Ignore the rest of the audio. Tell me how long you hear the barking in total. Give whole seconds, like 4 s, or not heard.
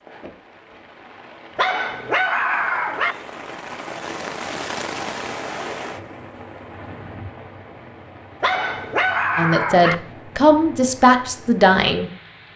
3 s.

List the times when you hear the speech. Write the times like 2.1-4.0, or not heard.
9.3-12.1.